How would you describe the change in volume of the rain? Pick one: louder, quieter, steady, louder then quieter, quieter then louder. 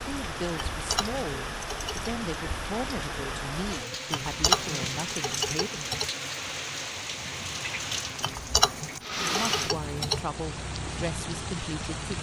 steady.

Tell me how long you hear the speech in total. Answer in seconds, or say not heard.
9 s.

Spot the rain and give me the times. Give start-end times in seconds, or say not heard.
0.0-12.1.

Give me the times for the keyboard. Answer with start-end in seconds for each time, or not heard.
0.6-2.1, 4.1-6.1, 8.2-10.2.